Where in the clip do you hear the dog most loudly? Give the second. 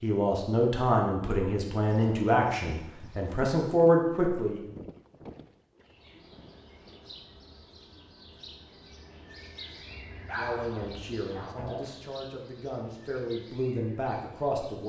10 s.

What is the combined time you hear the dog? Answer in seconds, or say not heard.
2 s.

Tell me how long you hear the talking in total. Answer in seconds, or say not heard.
9 s.